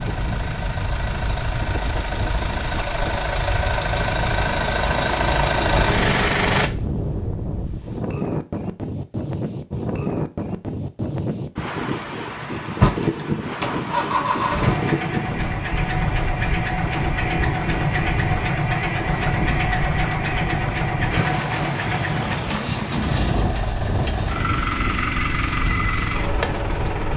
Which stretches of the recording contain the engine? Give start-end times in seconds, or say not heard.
0.0-6.7, 12.8-27.1.